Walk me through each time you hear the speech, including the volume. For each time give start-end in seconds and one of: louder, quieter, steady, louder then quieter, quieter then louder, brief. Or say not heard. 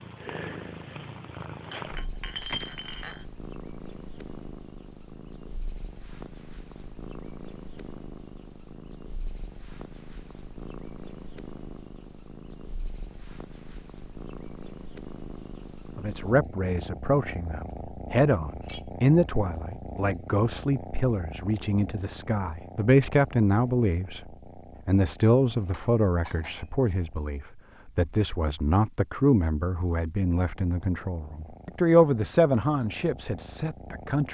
15.9-34.2 steady.